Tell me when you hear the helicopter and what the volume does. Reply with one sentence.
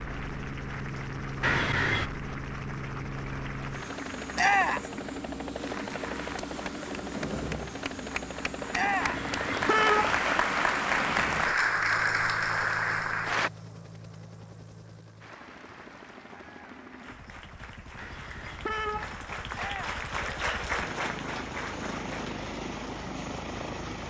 You can hear the helicopter from 0.0 to 24.0 s, getting quieter then louder.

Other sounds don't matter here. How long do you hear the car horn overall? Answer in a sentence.
The car horn can be heard for 3 seconds in total.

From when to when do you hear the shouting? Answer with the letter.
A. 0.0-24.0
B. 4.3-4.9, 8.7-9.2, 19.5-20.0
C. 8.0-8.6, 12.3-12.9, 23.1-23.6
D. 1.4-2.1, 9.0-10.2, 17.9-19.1
B.